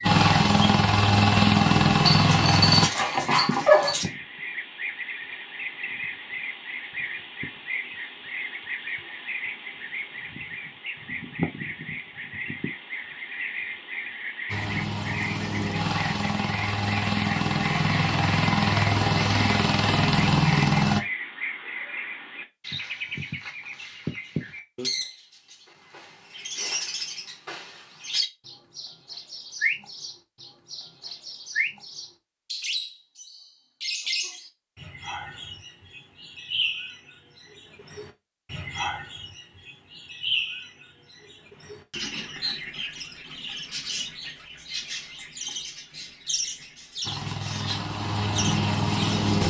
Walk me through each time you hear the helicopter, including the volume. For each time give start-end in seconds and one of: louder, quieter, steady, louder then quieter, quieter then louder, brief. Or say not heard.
0.0-2.9 brief
14.4-21.0 louder
47.0-49.4 brief.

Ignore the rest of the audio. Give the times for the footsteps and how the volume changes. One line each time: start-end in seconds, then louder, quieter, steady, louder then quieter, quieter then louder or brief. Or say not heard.
not heard.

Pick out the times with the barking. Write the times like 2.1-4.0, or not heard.
2.0-4.0.